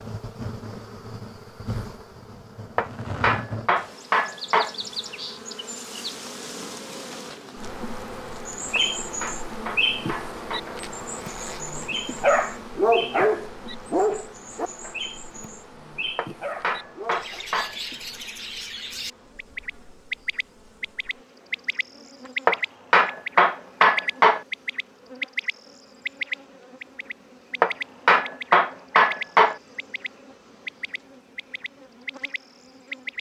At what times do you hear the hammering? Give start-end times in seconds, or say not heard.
2.8-4.8, 8.8-10.6, 16.1-17.8, 22.4-24.4, 27.6-29.6.